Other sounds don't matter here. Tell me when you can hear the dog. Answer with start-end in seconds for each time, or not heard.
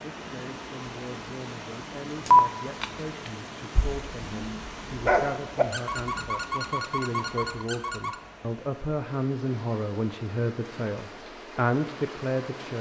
2.2-8.2.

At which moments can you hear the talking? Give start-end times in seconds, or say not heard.
0.1-12.7.